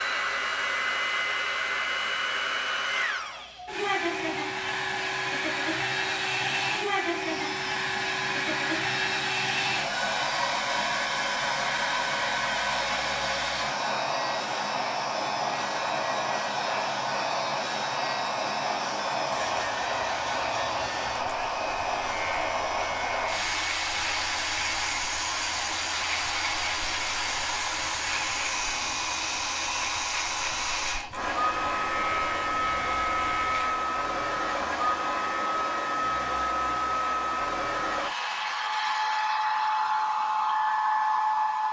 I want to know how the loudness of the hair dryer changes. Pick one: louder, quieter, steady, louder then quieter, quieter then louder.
steady.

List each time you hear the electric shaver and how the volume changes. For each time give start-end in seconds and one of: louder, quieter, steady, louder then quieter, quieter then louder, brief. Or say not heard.
7.2-33.9 steady.